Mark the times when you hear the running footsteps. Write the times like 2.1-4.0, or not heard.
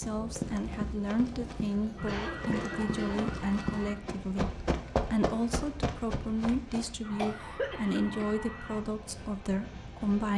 0.0-7.0.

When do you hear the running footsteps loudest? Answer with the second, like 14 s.
5 s.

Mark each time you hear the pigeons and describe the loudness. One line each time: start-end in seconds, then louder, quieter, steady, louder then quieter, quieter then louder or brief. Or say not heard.
not heard.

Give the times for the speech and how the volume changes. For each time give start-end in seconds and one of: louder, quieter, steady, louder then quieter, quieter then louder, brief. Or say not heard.
0.0-10.3 steady.